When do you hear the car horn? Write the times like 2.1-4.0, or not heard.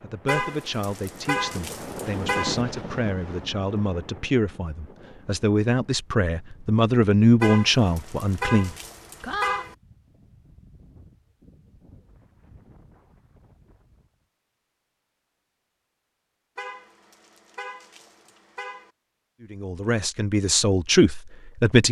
0.2-2.6, 7.4-9.8, 16.6-18.9.